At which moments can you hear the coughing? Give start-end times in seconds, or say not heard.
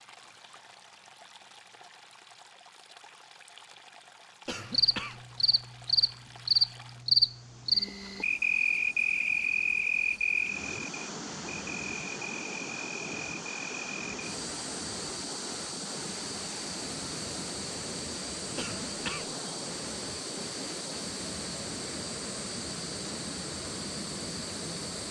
4.5-5.2, 18.6-19.4.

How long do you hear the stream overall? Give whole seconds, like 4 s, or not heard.
25 s.